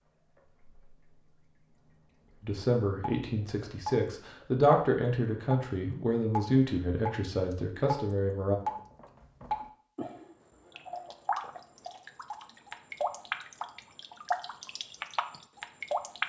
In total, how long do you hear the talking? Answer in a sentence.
The talking can be heard for 6 seconds in total.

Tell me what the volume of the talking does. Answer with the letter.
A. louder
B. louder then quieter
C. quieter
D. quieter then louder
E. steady
B.